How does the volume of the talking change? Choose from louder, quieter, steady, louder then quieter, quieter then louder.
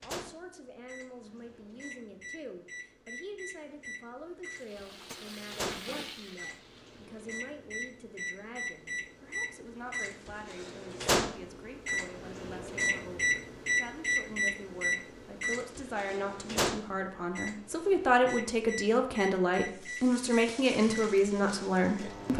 louder.